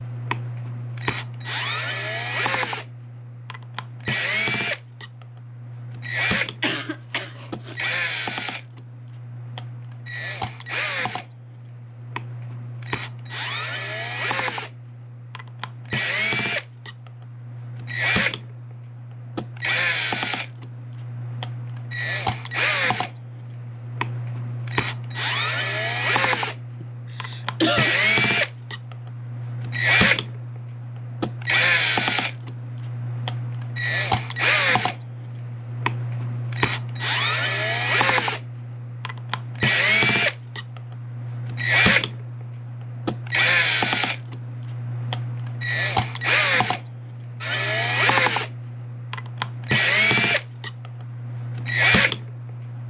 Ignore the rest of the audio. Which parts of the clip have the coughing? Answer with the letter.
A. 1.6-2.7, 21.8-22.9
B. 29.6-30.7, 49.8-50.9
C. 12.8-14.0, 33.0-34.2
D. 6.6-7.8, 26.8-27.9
D.